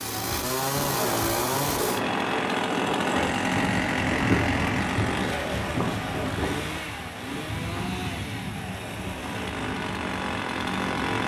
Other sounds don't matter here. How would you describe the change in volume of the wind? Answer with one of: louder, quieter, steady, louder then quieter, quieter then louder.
quieter.